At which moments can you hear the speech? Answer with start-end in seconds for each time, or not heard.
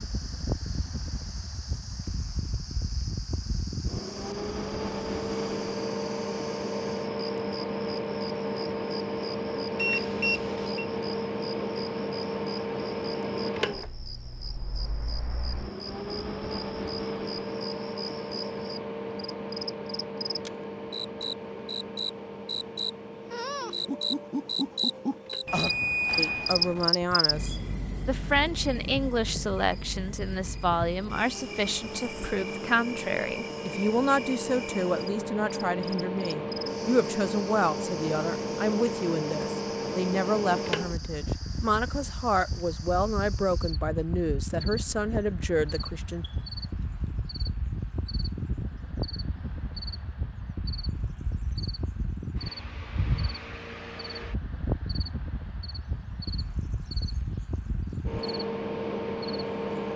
26.1-46.2.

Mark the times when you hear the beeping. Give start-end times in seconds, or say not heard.
9.8-10.8, 25.4-26.9, 46.2-47.1.